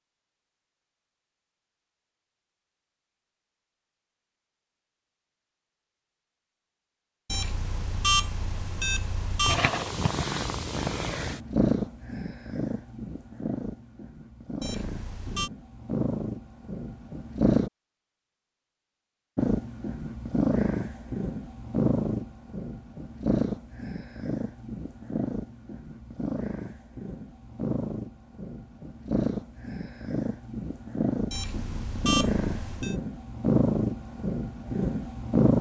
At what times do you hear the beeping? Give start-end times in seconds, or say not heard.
7.2-9.6, 14.6-15.5, 31.3-33.0.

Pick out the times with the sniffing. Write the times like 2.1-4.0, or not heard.
not heard.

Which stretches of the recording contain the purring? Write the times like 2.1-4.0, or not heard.
9.4-17.7, 19.4-35.5.